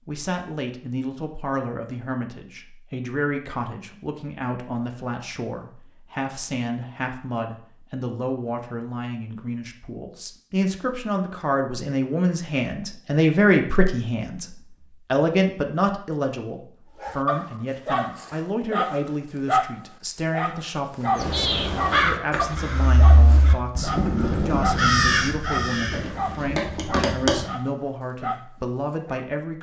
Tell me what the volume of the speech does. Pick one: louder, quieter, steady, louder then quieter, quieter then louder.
louder then quieter.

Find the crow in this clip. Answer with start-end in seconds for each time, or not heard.
21.1-27.5.